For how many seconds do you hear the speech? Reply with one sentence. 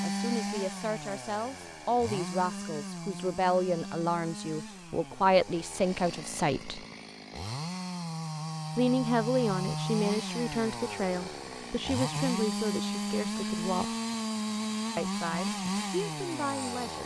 The speech can be heard for 14 seconds in total.